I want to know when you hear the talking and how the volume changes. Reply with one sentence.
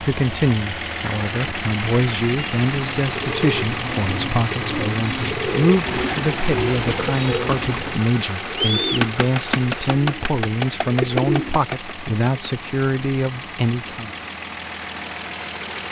You can hear the talking from 0.0 to 14.1 s, at a steady volume.